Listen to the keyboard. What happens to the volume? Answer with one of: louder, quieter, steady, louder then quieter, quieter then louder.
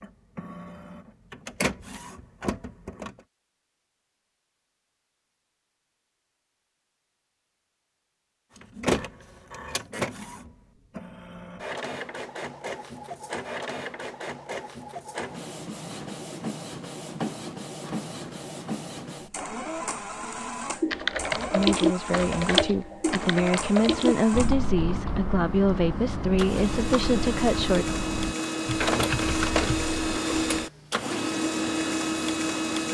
quieter.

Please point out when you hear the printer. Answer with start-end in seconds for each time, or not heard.
0.0-3.2, 8.6-32.8.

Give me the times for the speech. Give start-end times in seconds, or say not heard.
21.5-27.9.